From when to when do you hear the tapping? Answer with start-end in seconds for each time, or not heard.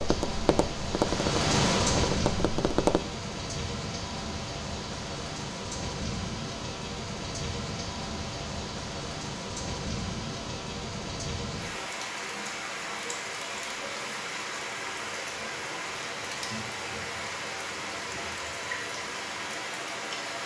0.0-3.0.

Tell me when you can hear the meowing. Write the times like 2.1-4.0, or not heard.
not heard.